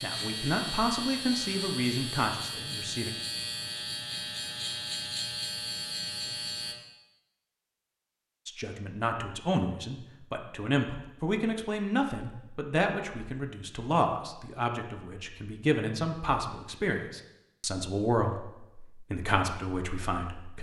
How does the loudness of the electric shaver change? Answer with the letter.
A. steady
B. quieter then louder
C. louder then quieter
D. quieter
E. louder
A.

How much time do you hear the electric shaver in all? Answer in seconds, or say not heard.
7 s.